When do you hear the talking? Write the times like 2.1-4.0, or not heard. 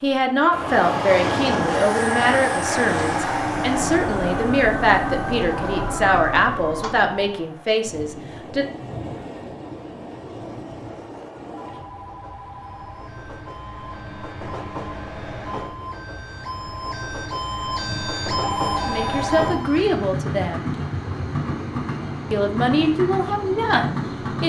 0.0-8.7, 18.9-20.7, 22.3-24.4.